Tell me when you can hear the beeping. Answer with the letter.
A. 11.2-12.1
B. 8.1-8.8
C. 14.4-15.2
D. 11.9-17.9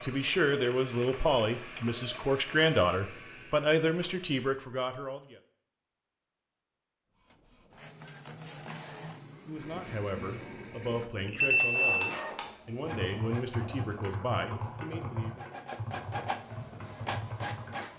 A.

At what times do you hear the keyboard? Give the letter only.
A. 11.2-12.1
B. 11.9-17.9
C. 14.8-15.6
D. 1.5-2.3
B.